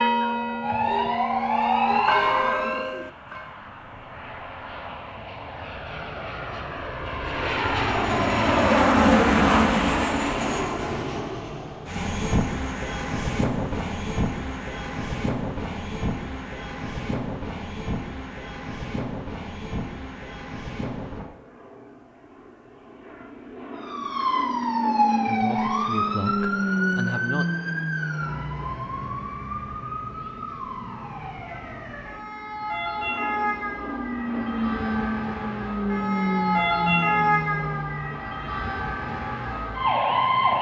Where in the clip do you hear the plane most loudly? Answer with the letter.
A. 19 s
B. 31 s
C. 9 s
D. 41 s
C.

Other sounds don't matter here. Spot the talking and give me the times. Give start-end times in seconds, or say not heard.
25.2-27.4.